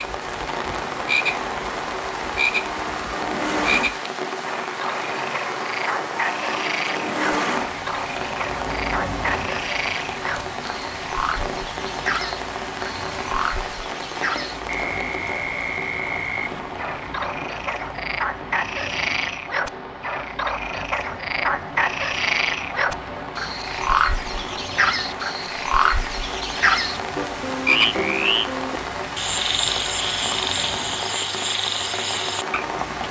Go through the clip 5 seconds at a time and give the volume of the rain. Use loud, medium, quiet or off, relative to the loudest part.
loud, loud, loud, medium, medium, loud, loud.